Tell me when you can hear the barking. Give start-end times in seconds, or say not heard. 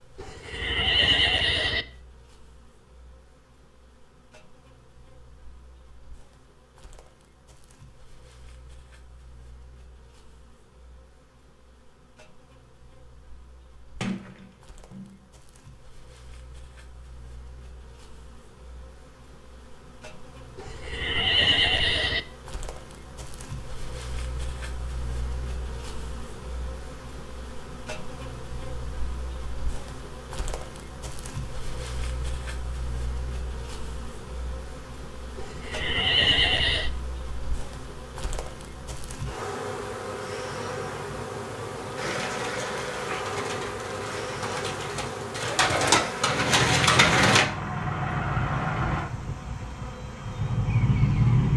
not heard.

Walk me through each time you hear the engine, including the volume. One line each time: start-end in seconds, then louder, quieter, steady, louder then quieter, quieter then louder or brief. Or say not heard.
46.4-51.5 quieter then louder.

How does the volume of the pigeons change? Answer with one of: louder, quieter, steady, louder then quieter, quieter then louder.
louder.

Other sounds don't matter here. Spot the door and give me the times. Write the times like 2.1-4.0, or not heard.
14.0-15.2.